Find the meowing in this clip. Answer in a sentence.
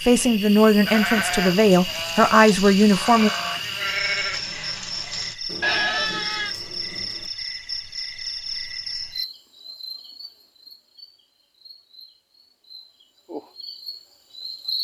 The meowing can't be heard in this clip.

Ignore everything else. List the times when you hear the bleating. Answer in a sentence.
You can hear the bleating from 0.8 to 6.5 s.